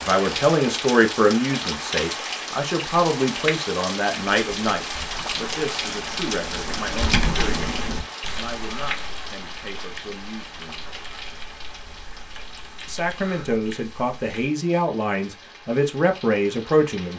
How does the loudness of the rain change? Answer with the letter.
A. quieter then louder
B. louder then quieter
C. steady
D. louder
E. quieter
E.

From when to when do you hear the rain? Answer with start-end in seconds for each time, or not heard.
0.0-17.1.